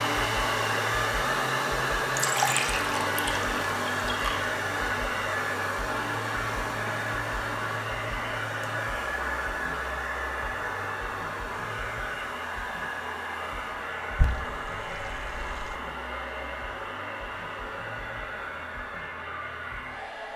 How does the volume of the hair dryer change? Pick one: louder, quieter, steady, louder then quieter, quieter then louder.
quieter.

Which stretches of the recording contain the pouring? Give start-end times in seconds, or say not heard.
2.1-4.5, 14.2-15.8.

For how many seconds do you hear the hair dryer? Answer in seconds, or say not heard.
20 s.